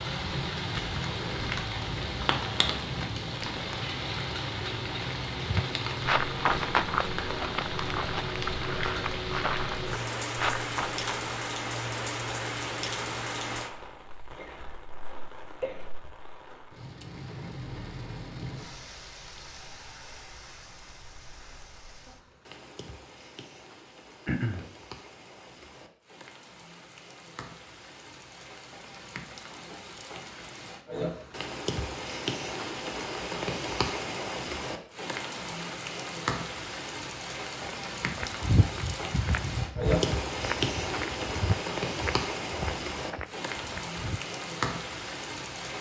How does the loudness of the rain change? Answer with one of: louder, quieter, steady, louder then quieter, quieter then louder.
quieter then louder.